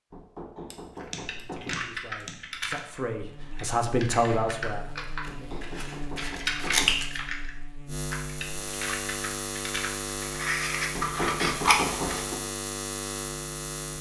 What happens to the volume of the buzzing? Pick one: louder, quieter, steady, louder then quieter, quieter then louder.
louder.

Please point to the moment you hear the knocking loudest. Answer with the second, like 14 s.
11 s.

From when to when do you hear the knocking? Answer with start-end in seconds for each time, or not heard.
0.1-1.9, 5.2-7.0, 10.9-12.4.